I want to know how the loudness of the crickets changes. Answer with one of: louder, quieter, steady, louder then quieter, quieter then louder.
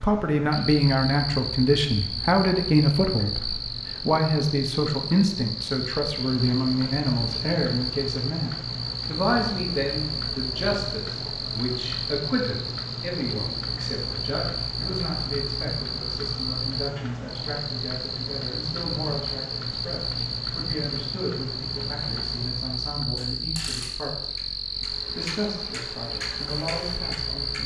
steady.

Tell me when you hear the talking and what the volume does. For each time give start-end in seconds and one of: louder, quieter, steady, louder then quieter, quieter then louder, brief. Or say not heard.
0.0-27.6 quieter.